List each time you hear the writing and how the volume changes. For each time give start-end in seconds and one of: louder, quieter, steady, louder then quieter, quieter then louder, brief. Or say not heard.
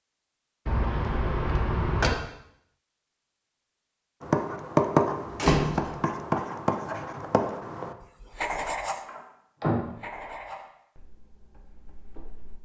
4.2-9.1 quieter
9.8-12.6 brief.